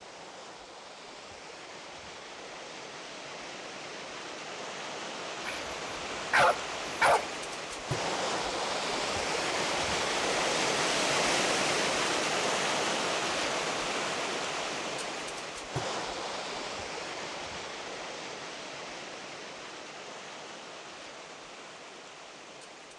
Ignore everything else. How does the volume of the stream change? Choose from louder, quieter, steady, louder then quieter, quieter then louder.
louder then quieter.